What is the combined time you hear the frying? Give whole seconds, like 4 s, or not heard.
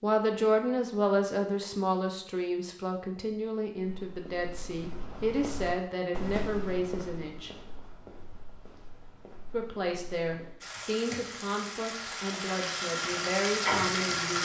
4 s.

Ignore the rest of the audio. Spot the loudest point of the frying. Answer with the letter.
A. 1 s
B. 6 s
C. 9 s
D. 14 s
D.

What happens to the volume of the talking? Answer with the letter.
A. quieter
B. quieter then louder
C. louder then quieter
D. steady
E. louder
A.